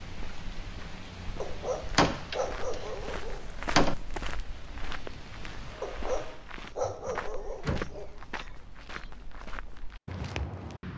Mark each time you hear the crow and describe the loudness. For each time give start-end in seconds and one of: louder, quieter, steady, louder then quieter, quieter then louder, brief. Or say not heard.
not heard.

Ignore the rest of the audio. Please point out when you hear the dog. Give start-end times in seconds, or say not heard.
1.4-3.5, 5.8-8.2.